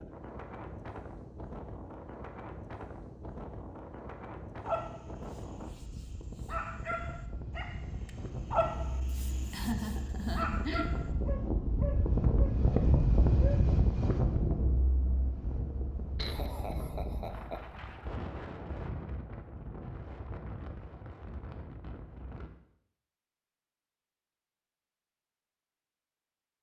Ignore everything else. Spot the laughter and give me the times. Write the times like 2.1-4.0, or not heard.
9.5-11.0, 16.1-17.6.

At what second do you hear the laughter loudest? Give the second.
10 s.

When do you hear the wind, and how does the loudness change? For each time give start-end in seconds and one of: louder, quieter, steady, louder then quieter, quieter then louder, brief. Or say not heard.
0.0-22.5 louder then quieter.